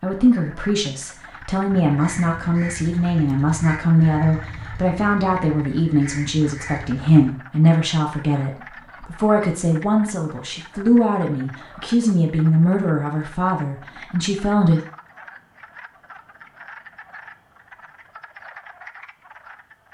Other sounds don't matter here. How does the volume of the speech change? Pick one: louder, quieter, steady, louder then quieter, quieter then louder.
steady.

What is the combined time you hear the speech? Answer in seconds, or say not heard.
15 s.